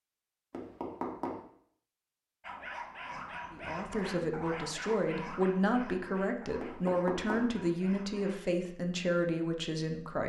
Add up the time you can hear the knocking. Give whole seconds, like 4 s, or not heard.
2 s.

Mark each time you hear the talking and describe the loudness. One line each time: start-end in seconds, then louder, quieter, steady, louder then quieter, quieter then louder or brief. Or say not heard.
3.5-10.2 steady.